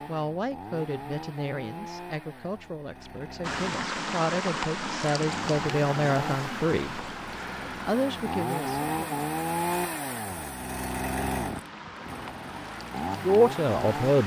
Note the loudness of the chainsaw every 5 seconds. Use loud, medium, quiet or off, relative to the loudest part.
medium, loud, loud.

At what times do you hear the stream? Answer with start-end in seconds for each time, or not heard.
3.4-14.2.